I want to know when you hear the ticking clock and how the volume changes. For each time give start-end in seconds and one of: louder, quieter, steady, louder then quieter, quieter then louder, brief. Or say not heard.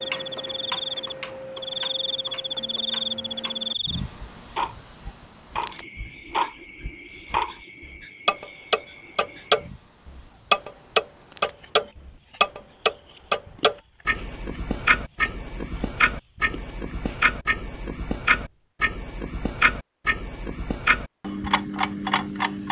0.0-22.6 louder then quieter.